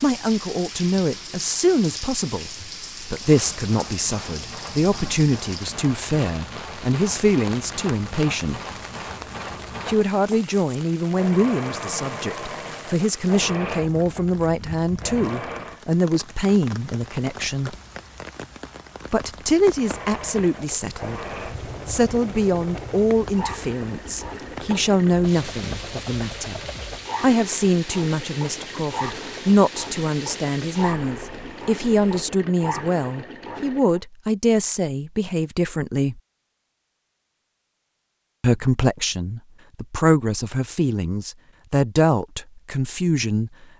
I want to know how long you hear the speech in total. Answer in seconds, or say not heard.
38 s.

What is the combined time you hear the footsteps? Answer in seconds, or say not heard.
not heard.